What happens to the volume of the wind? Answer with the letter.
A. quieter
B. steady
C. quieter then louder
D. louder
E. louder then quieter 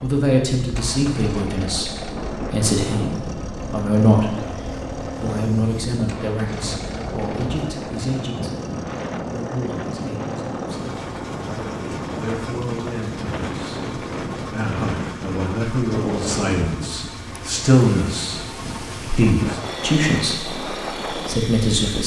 B.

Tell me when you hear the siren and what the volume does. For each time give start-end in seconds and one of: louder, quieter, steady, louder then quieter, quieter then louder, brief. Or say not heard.
not heard.